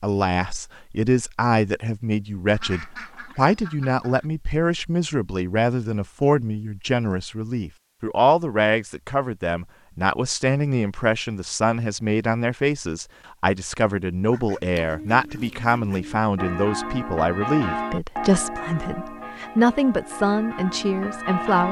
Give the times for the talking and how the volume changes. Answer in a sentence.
The talking can be heard from 0.0 to 21.6 s, at a steady volume.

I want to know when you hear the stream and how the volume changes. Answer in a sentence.
The stream can't be heard in this clip.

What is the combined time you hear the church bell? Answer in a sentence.
You can hear the church bell for 5 seconds altogether.